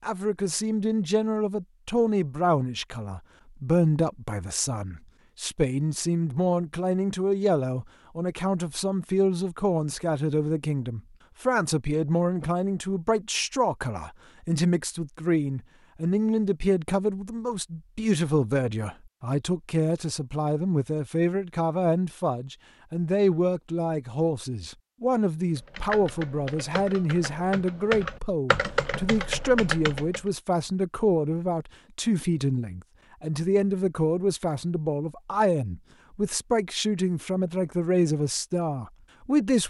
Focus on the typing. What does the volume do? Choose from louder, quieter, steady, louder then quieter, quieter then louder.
louder.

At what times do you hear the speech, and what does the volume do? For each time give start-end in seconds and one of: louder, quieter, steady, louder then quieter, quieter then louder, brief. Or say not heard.
0.0-39.6 steady.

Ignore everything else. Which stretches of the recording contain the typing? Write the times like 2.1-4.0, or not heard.
25.6-30.2.